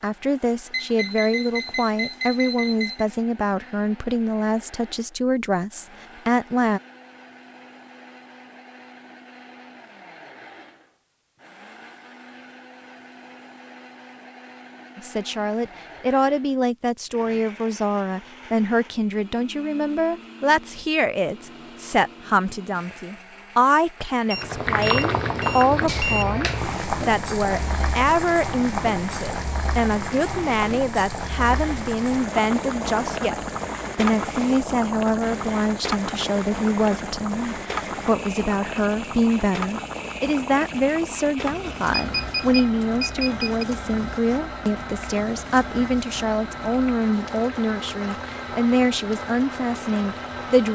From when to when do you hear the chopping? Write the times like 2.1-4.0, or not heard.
not heard.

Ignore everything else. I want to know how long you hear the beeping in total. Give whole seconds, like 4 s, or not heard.
6 s.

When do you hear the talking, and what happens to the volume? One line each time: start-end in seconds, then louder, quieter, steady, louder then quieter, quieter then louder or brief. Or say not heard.
0.0-6.8 steady
14.9-50.7 steady.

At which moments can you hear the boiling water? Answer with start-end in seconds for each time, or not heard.
24.3-50.6.